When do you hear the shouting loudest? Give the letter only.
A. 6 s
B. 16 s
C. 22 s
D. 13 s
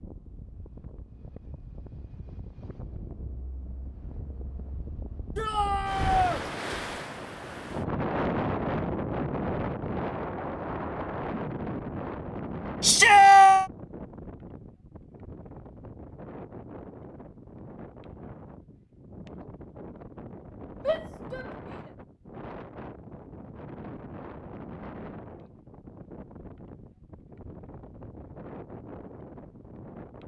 D.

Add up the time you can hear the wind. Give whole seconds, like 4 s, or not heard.
30 s.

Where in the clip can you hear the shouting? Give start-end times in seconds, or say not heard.
5.3-6.4, 12.8-13.7, 20.9-21.4.